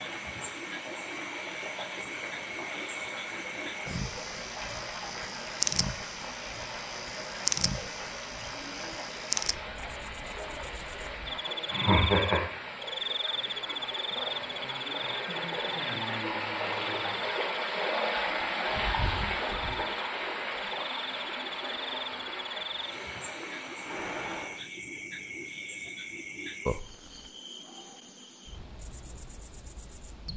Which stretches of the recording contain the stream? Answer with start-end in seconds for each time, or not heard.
0.0-24.6.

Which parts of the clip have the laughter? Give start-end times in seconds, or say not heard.
11.7-12.4.